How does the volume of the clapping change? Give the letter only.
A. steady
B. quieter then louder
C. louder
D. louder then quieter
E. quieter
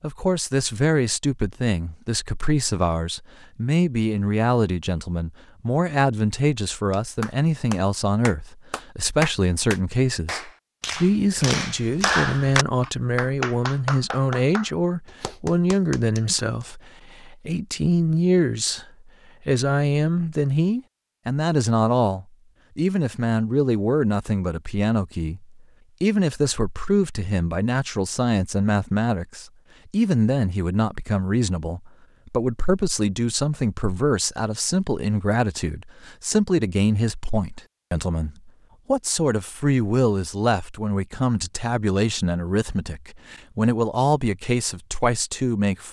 D.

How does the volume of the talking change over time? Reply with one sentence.
The loudness of the talking stays about the same.